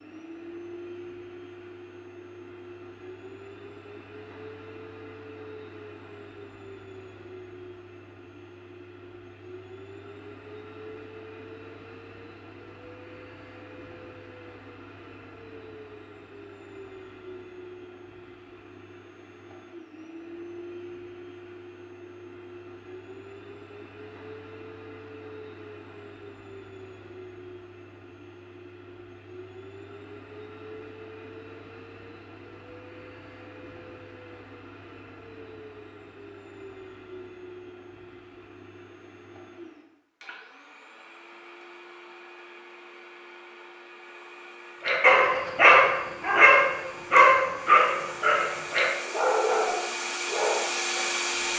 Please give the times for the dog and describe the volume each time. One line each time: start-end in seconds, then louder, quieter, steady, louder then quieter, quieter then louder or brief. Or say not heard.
44.9-51.1 quieter.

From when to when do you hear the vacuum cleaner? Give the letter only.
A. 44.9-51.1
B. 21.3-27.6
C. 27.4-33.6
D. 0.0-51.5
D.